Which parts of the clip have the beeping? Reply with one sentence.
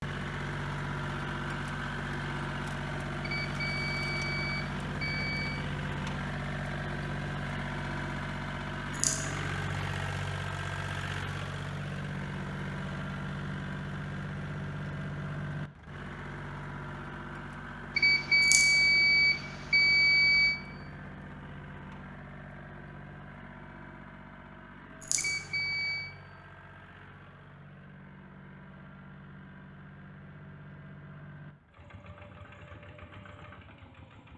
You can hear the beeping from 3.2 to 5.7 s, from 17.9 to 20.6 s and from 25.1 to 26.1 s.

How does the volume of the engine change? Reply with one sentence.
The volume of the engine goes down.